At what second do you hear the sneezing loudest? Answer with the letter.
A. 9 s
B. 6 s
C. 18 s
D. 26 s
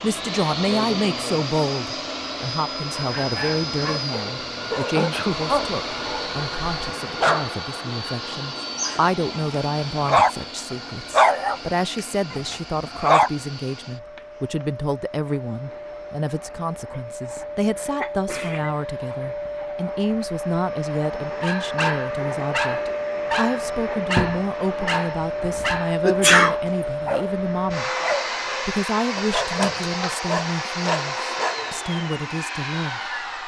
D.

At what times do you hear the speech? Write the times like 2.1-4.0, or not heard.
0.0-27.9, 28.6-33.4.